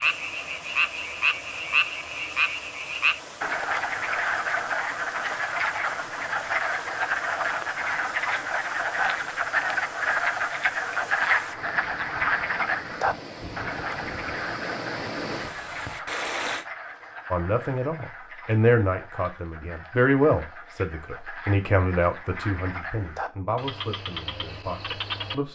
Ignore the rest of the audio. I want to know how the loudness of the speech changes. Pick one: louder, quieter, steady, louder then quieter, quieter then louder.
quieter.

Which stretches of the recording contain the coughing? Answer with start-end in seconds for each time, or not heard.
not heard.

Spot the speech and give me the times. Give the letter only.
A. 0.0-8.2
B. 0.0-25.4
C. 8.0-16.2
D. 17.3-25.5
D.